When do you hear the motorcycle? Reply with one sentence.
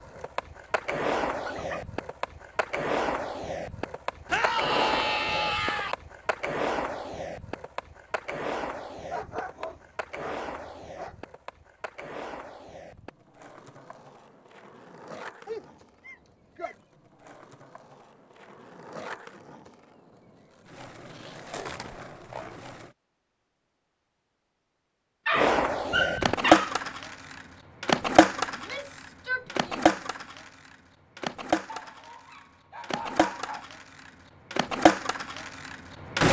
The motorcycle can't be heard in this clip.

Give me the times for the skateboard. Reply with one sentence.
You can hear the skateboard from 0.0 to 22.9 s and from 25.3 to 36.2 s.